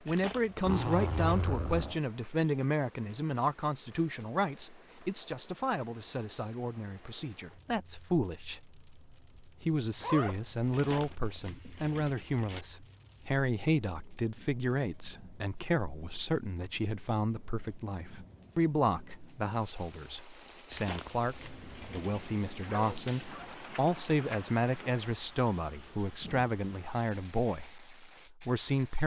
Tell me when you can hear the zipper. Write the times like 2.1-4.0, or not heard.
0.6-2.0, 10.0-11.2, 22.6-23.5.